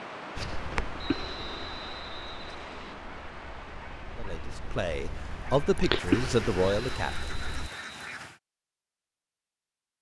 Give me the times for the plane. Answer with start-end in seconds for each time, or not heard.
not heard.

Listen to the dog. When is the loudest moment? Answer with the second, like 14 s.
6 s.